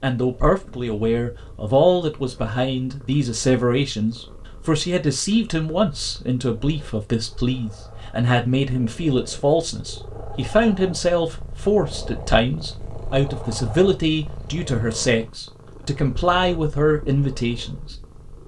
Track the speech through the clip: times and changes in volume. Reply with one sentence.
The speech can be heard from 0.0 to 17.9 s, at a steady volume.